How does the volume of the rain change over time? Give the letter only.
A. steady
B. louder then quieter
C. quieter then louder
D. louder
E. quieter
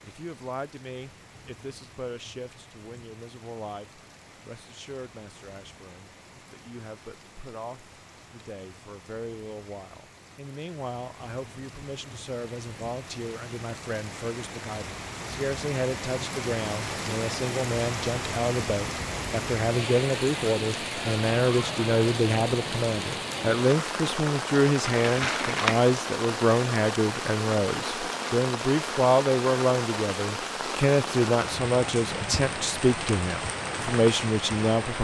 D.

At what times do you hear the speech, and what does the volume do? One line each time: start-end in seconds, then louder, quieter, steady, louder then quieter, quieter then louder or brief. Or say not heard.
0.0-35.0 louder.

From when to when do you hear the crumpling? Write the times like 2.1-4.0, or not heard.
24.9-25.9.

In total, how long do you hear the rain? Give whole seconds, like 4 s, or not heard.
35 s.